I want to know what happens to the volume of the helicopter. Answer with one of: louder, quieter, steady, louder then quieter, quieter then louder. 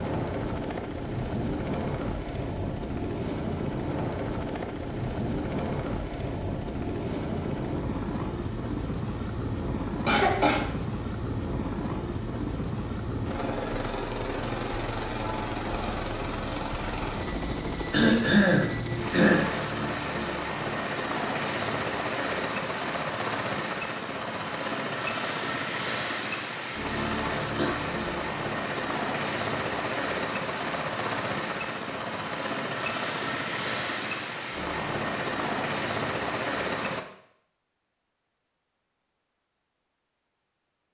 steady.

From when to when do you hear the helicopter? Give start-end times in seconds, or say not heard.
0.0-37.0.